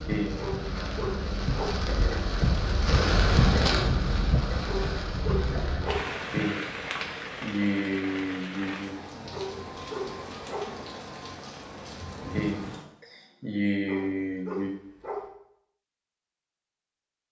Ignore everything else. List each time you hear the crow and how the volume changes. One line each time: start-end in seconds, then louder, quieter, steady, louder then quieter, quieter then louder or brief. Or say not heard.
not heard.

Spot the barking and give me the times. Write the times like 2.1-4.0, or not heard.
0.3-1.8, 4.7-6.0, 9.3-10.7, 13.8-15.2.